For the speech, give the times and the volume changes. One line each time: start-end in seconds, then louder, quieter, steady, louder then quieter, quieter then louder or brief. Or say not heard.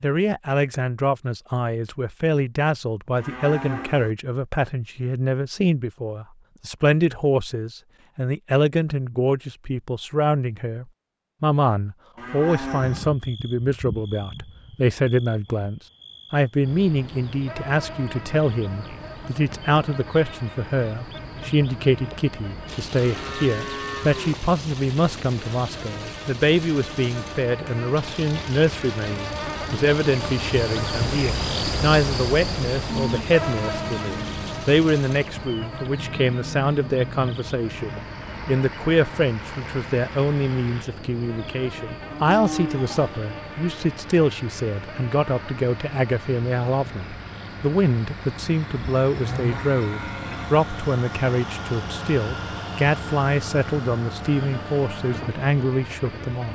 0.0-56.4 steady.